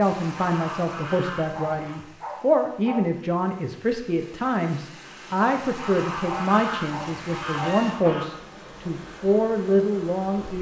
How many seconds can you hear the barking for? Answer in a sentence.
The barking can be heard for 3 seconds in total.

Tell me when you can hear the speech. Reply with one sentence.
The speech can be heard from 0.0 to 10.5 s.